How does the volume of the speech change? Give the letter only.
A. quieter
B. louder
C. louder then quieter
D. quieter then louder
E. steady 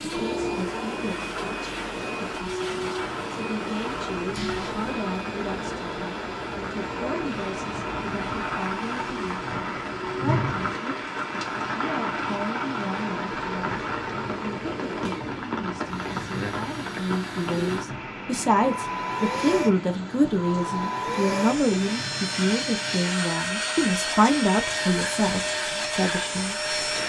B.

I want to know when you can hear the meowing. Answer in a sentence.
You can hear the meowing from 4.3 to 4.9 s.